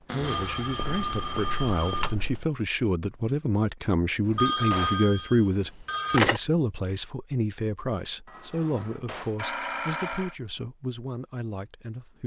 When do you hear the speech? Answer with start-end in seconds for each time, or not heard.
0.1-12.2.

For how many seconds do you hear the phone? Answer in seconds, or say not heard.
6 s.